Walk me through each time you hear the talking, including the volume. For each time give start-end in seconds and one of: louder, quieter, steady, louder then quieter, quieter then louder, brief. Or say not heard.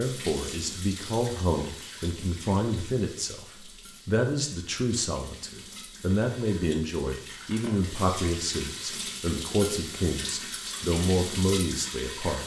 0.0-12.4 steady.